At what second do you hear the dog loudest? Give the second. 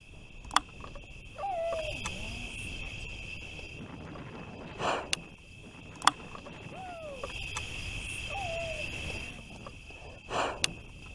2 s.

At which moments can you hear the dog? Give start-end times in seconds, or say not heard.
1.4-2.5, 8.2-9.4.